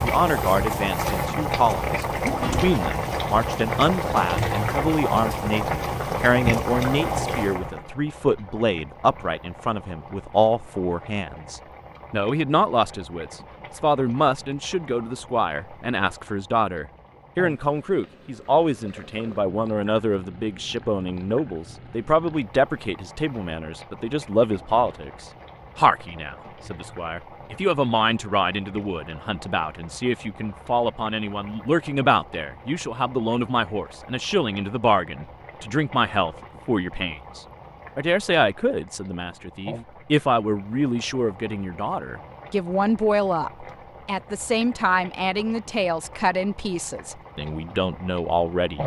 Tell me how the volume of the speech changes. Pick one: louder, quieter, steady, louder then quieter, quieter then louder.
steady.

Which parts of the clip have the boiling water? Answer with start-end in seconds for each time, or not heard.
0.0-48.8.